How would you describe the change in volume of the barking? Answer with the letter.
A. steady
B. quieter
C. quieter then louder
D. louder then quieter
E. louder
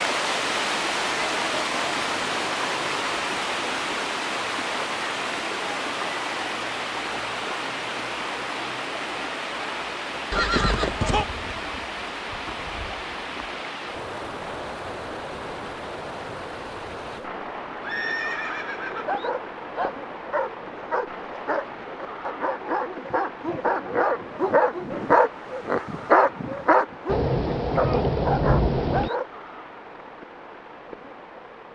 D.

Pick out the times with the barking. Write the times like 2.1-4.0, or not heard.
19.1-29.2.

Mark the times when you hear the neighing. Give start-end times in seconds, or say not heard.
10.3-11.2, 17.8-19.2.